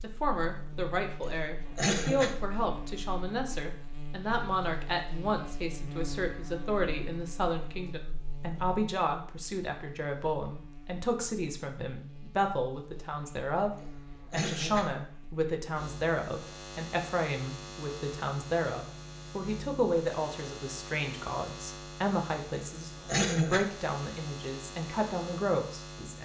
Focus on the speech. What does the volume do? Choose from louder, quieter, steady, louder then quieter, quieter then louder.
steady.